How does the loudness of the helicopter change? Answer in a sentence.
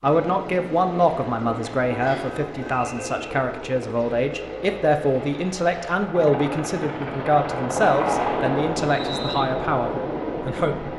The volume of the helicopter goes up.